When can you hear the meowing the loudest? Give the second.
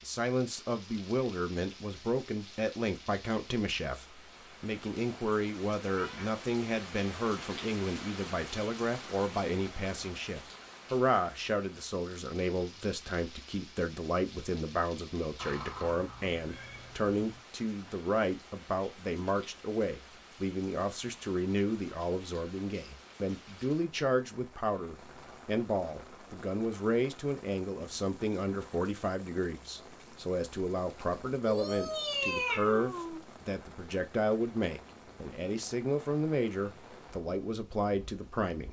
32 s.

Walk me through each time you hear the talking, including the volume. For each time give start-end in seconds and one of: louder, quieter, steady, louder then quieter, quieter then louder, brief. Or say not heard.
0.0-38.6 steady.